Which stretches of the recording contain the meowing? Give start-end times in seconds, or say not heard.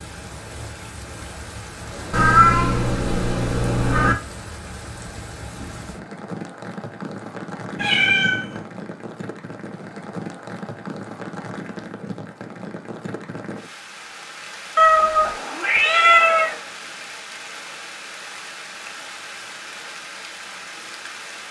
2.1-4.2, 7.8-8.7, 14.8-16.6.